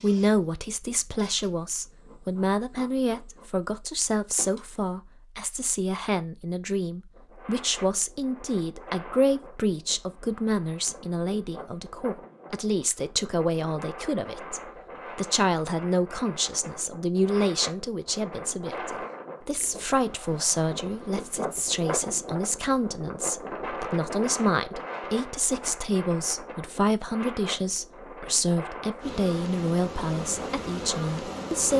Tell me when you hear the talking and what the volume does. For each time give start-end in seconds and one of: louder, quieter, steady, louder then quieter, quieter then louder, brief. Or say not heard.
0.0-31.7 steady.